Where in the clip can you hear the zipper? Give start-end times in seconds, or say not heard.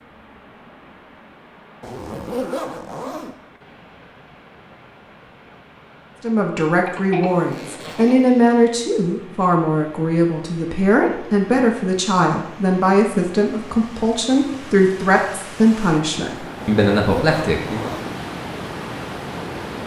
1.8-3.4, 7.2-8.6, 16.6-18.1.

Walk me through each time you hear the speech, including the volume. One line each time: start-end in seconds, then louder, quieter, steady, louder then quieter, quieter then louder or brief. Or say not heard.
6.2-17.9 steady.